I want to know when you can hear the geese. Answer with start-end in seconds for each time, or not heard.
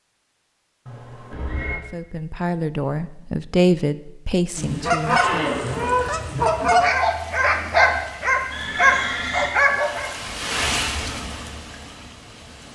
4.5-6.9.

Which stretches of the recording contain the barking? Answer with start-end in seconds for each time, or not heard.
6.8-10.3.